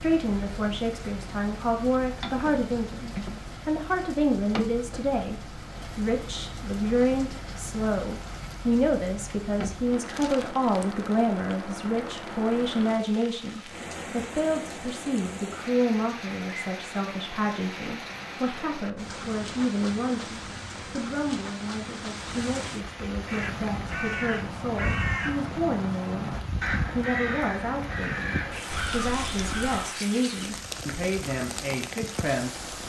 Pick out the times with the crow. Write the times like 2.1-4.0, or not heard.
23.2-29.9.